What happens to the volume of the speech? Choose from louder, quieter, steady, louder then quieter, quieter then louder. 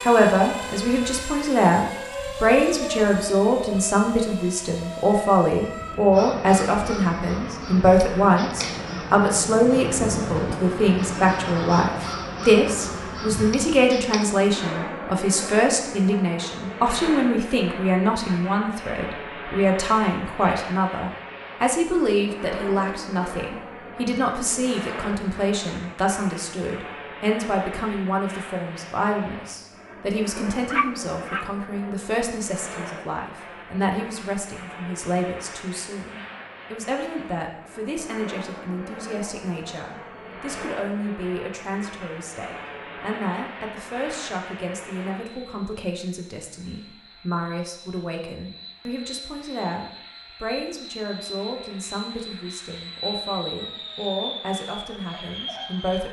quieter.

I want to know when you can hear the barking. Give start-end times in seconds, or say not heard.
30.7-31.4.